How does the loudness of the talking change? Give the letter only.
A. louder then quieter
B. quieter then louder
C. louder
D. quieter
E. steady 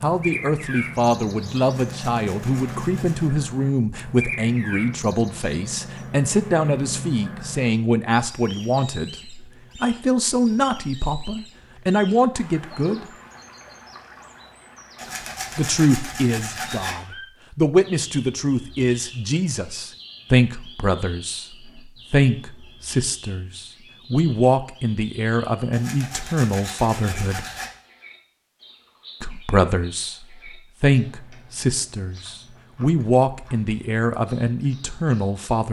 E.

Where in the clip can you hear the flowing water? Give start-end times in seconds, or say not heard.
not heard.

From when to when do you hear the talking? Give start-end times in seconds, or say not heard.
0.0-13.1, 15.6-27.4, 29.2-35.6.